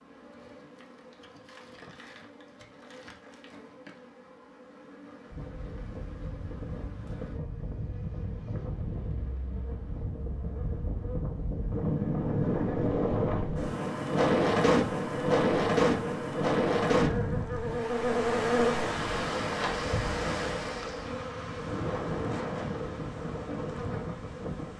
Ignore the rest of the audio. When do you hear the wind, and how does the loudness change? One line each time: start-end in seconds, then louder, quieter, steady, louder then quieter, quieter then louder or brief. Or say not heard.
5.3-24.7 louder then quieter.